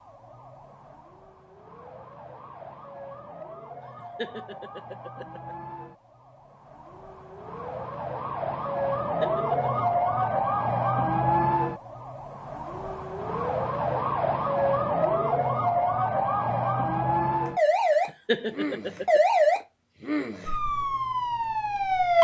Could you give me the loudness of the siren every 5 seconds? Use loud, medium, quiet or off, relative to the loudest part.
quiet, medium, loud, loud, loud.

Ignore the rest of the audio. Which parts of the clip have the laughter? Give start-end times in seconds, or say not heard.
4.0-5.5, 9.0-10.4, 18.1-19.2.